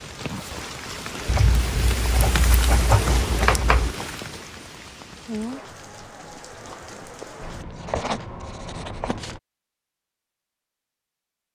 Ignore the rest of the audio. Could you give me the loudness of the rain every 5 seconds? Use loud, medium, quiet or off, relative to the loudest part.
loud, medium, off.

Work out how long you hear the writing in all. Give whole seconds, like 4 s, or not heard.
5 s.